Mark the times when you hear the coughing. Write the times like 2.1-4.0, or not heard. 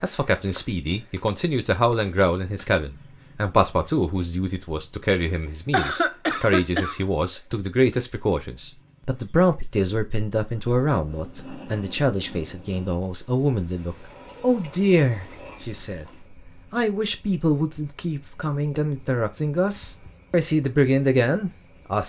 5.7-7.0.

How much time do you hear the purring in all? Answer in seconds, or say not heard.
not heard.